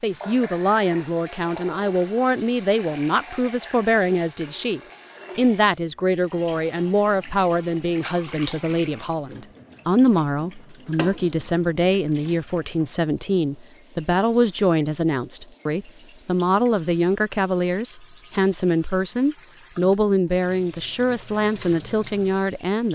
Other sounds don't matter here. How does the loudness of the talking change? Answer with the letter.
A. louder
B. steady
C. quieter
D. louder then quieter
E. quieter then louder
B.